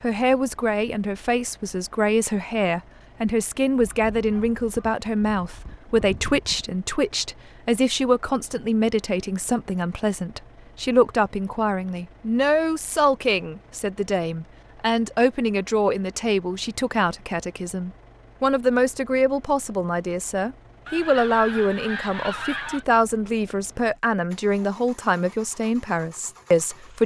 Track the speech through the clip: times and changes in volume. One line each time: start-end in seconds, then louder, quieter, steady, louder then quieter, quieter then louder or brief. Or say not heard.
0.0-27.0 steady.